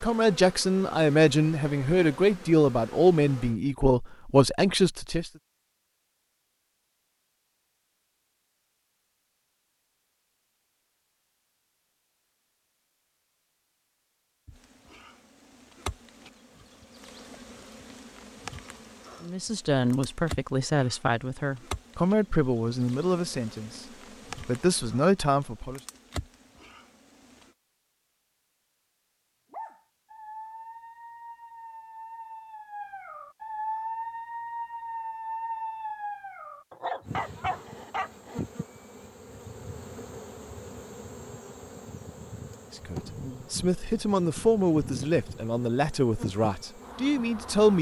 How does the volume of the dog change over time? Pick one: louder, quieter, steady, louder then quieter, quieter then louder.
louder.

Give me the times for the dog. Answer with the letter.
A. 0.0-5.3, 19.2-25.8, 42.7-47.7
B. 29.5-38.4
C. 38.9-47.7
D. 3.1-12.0
B.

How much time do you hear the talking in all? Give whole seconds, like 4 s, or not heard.
17 s.